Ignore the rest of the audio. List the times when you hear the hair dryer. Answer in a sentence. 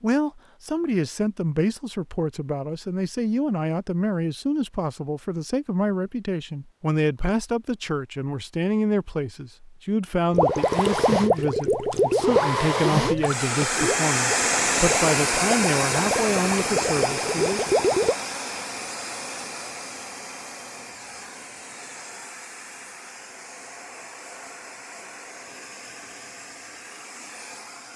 You can hear the hair dryer from 10.3 to 27.9 s.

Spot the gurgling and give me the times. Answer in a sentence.
The gurgling can be heard from 10.3 to 18.1 s.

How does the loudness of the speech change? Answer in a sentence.
The loudness of the speech stays about the same.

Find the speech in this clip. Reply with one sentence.
The speech can be heard from 0.0 to 17.6 s.